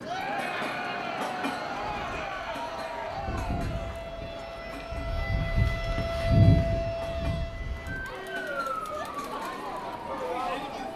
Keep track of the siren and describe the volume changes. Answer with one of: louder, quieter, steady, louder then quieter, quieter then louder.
louder then quieter.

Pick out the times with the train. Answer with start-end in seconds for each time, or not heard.
0.0-10.9.